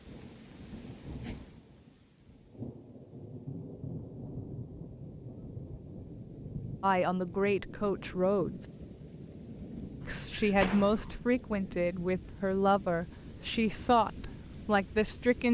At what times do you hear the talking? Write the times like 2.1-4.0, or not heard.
6.8-8.7, 10.1-15.4.